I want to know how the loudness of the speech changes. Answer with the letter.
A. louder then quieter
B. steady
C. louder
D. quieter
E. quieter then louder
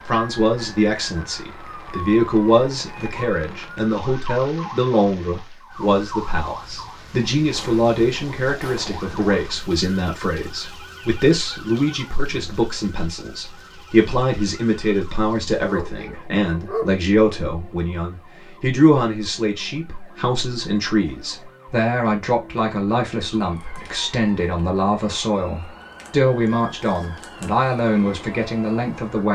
B.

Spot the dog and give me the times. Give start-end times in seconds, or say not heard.
15.7-16.9.